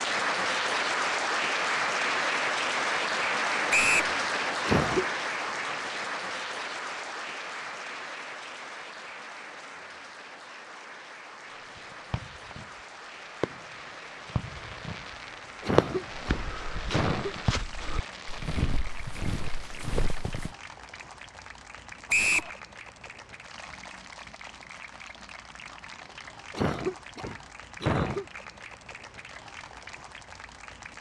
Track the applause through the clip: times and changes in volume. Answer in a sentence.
You can hear the applause from 0.0 to 30.9 s, getting quieter.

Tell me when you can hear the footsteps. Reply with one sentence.
You can hear the footsteps from 16.1 to 20.5 s.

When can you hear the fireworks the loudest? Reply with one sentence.
The volume of the fireworks peaks at 16 seconds.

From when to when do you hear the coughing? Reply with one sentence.
You can hear the coughing from 4.6 to 5.0 s, from 15.6 to 17.4 s and from 26.5 to 28.2 s.